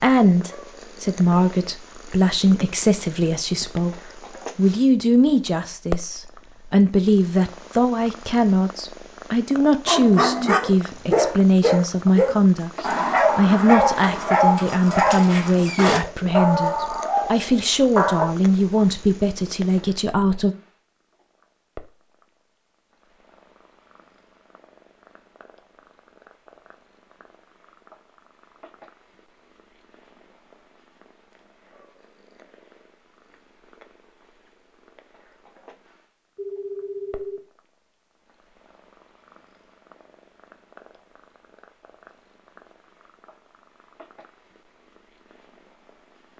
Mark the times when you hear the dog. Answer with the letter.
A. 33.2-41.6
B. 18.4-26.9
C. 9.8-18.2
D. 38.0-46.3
C.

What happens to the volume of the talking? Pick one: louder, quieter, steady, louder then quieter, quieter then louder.
steady.